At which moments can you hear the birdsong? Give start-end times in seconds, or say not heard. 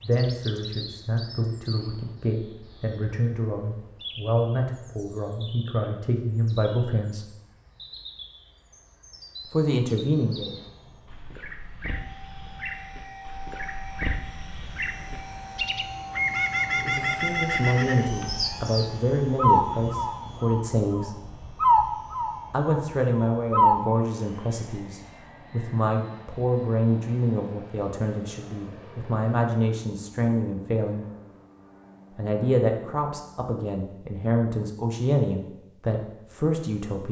0.0-23.9.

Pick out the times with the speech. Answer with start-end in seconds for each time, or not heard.
0.0-7.2, 9.4-10.6, 16.8-21.1, 22.5-31.1, 32.1-37.0.